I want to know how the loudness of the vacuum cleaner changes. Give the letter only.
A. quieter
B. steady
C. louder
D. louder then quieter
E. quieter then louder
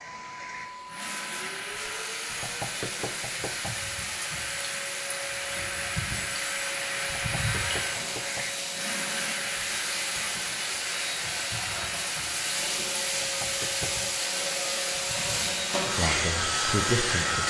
C.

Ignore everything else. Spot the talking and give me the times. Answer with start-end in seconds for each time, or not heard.
15.8-17.4.